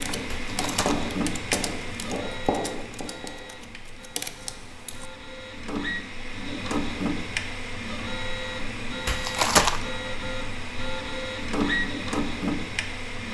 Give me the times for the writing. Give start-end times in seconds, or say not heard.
0.1-3.6.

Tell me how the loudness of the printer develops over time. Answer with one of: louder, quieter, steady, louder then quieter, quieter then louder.
quieter then louder.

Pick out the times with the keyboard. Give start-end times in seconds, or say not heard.
0.0-5.1.